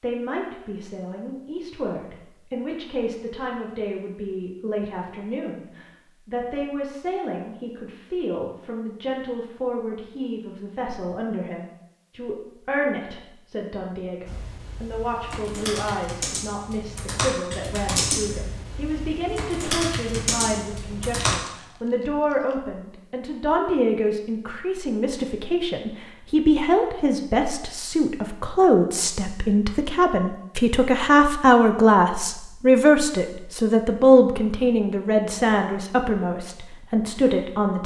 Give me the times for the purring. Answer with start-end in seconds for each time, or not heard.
not heard.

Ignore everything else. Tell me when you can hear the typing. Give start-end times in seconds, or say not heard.
14.2-21.4.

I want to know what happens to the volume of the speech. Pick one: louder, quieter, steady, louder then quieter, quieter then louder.
louder.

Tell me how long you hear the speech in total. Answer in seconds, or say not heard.
38 s.